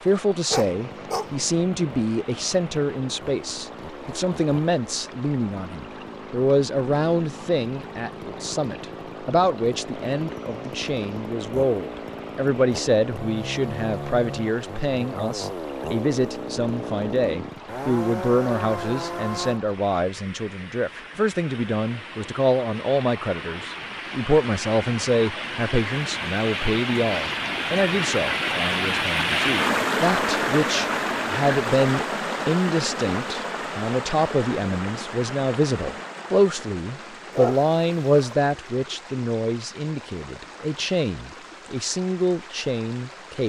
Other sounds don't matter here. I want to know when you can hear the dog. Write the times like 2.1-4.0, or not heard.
0.1-1.3, 37.3-38.4.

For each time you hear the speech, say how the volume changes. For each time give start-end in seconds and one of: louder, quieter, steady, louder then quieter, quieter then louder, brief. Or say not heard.
0.0-43.4 steady.